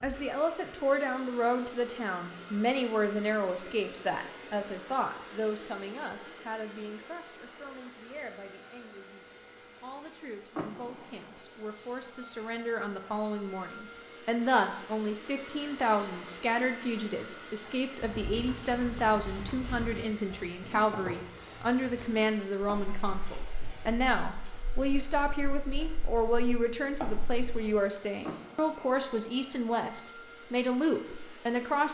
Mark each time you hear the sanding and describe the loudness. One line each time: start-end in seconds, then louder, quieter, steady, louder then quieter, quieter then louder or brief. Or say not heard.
not heard.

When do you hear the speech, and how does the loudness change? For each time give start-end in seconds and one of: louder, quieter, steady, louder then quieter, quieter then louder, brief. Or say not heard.
0.0-31.8 quieter then louder.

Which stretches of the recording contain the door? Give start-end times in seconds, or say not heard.
10.5-11.4, 28.2-28.9.